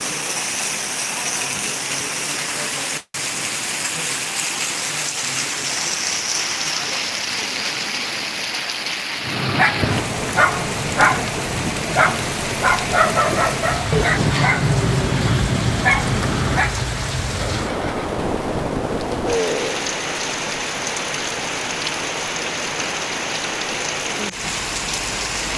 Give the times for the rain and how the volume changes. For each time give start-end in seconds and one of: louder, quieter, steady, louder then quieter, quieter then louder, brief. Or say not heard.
0.0-25.5 steady.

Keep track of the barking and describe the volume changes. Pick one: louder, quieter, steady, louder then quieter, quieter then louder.
steady.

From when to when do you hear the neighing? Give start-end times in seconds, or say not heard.
17.4-18.1.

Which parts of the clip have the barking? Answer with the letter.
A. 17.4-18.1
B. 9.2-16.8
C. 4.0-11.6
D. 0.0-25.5
B.